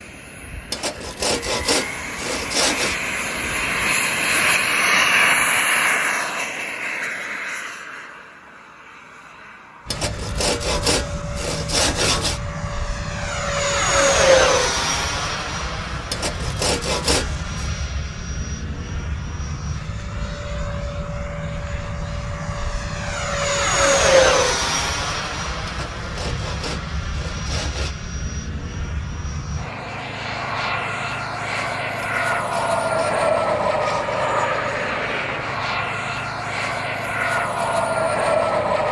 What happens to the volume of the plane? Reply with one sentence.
The loudness of the plane goes down, then up.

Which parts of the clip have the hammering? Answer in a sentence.
You can't hear the hammering here.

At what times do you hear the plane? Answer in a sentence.
You can hear the plane from 0.0 to 38.8 s.